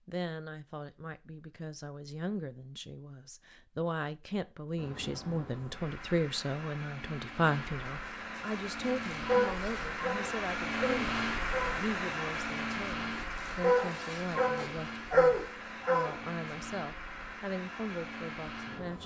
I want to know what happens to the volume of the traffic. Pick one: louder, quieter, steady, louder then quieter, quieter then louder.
louder then quieter.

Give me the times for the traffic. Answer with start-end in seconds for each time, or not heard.
4.8-19.0.